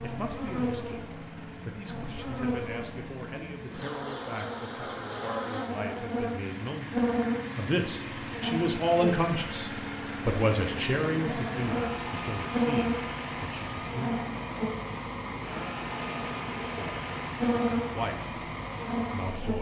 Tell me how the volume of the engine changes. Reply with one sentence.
The volume of the engine goes up.